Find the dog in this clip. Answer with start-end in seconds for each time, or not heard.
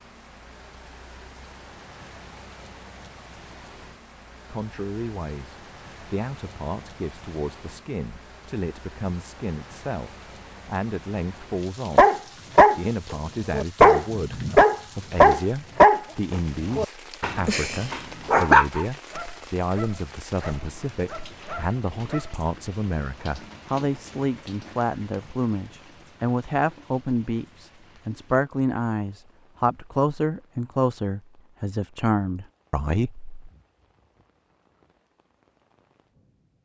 11.9-22.4.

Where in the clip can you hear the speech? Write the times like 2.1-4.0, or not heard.
4.5-33.3.